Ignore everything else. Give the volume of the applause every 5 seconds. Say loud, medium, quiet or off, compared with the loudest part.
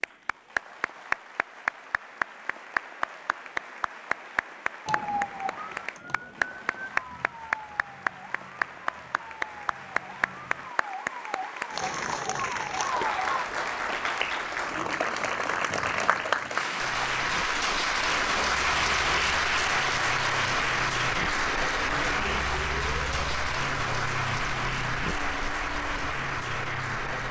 medium, medium, medium, loud, loud, medium.